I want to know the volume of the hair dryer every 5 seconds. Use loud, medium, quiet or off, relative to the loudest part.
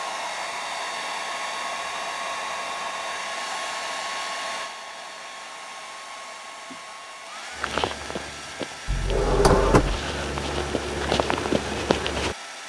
loud, medium, medium.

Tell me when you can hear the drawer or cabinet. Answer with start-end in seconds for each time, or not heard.
8.8-10.0.